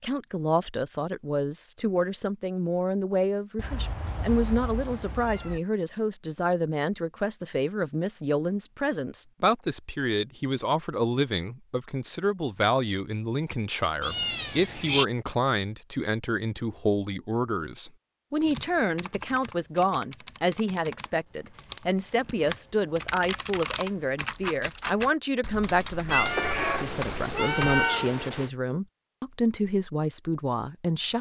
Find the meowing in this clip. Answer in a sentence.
You can hear the meowing from 3.5 to 5.6 s, from 14.0 to 15.1 s and from 26.1 to 28.5 s.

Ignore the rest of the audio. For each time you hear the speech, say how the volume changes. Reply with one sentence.
You can hear the speech from 0.0 to 31.1 s, at a steady volume.